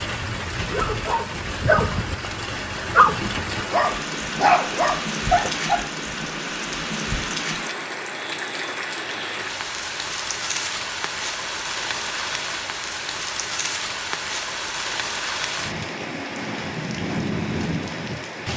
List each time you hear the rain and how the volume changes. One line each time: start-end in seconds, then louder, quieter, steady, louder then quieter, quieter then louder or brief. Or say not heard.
0.0-18.5 steady.